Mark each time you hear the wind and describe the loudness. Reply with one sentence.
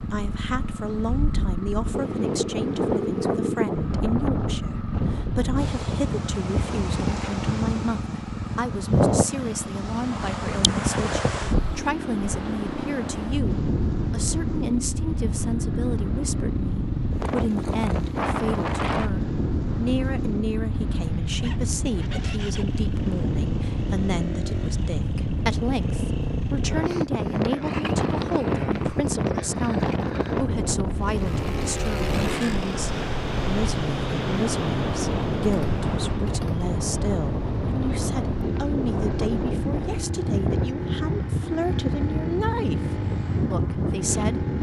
The wind can be heard from 0.0 to 44.5 s, at a steady volume.